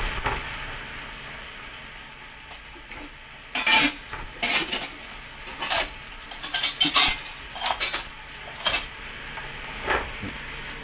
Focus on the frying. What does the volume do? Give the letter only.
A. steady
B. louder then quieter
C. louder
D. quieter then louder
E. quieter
D.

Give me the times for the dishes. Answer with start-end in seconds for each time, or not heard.
2.4-8.8.